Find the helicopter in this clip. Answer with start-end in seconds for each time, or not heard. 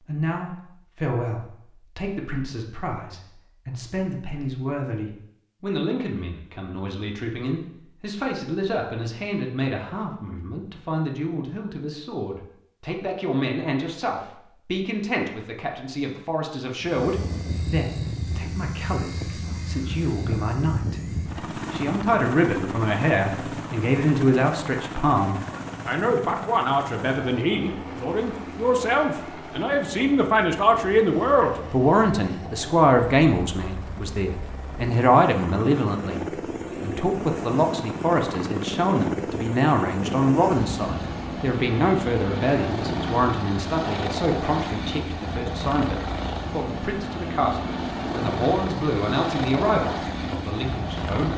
16.8-51.3.